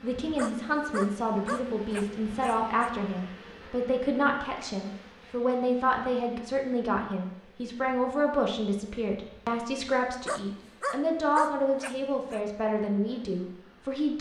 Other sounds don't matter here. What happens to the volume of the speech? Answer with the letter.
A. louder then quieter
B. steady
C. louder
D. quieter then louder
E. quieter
B.